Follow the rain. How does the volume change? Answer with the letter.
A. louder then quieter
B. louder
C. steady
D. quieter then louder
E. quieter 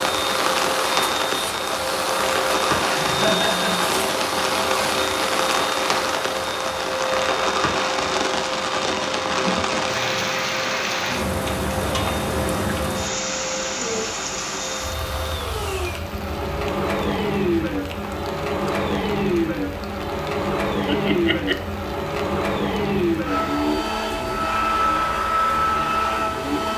E.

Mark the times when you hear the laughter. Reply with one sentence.
The laughter can be heard from 2.8 to 3.9 s, from 9.2 to 9.9 s and from 20.9 to 21.6 s.